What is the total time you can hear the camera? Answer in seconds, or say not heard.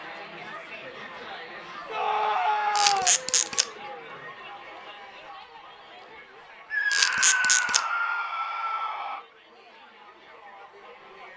2 s.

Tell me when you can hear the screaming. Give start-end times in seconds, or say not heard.
1.9-3.1, 6.7-9.2.